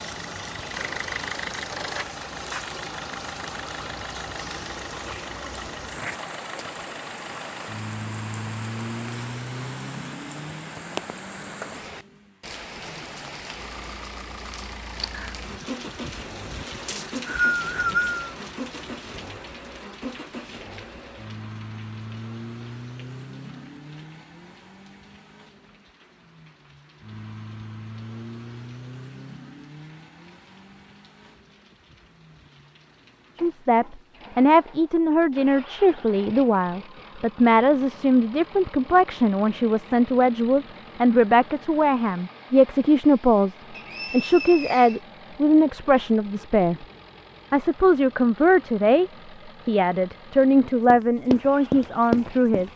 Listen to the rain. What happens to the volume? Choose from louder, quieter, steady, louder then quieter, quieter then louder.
quieter.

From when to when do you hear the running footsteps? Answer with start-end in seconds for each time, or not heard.
50.9-52.7.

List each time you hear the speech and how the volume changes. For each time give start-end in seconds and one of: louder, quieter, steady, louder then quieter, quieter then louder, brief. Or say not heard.
33.4-46.9 steady
47.5-52.7 steady.